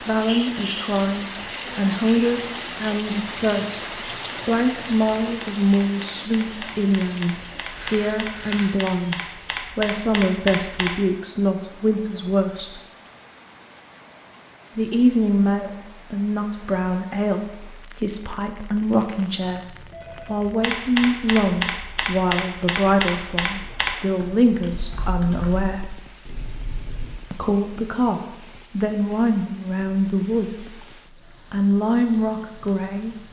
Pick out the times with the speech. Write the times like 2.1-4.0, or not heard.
0.0-12.8, 14.8-25.8, 27.3-30.8, 31.5-33.1.